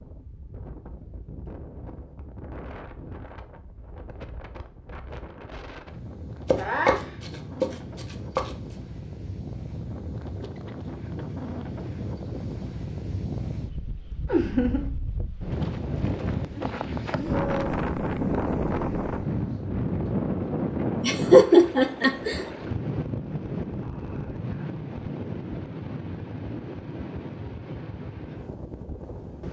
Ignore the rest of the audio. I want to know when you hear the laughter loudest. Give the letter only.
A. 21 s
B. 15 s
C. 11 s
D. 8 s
A.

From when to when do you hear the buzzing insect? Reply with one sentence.
The buzzing insect can't be heard in this clip.